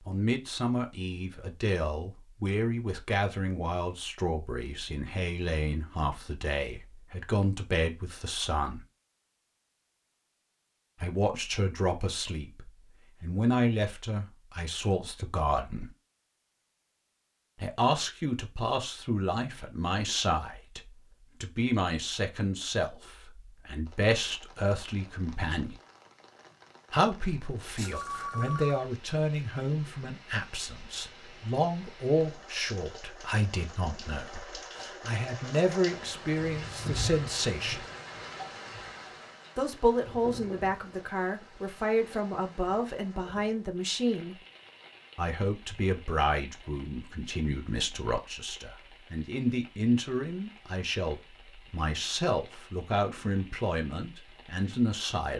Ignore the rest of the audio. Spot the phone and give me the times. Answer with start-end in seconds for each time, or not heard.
27.8-28.9.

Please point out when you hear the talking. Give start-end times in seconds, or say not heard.
0.1-8.8, 11.0-15.9, 17.6-25.8, 26.9-37.9, 39.5-44.4, 45.1-55.3.